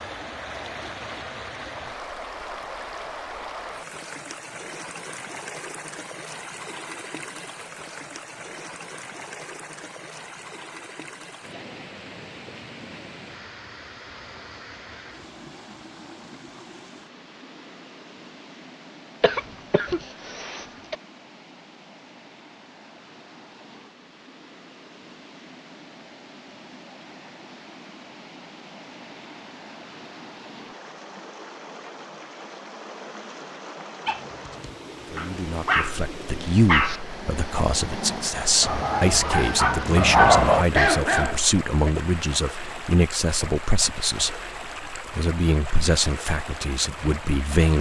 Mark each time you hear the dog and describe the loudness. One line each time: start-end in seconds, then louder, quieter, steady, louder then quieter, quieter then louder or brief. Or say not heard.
34.0-42.0 quieter then louder.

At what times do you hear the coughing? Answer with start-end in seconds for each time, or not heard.
19.2-20.9.